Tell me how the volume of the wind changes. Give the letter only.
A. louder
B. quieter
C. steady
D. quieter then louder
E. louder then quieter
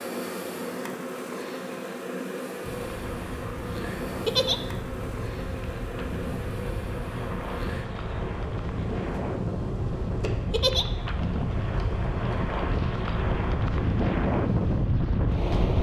A.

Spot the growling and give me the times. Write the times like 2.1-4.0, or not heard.
not heard.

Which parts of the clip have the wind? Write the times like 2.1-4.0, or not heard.
2.6-15.7.